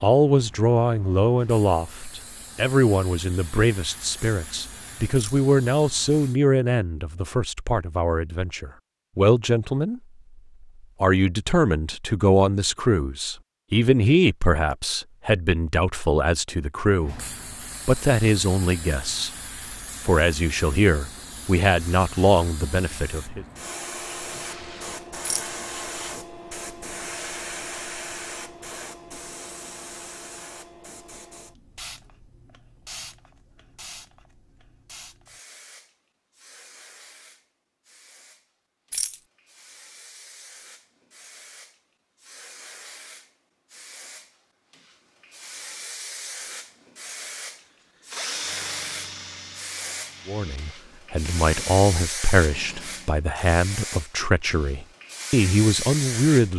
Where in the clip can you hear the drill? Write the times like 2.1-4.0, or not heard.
48.1-53.2.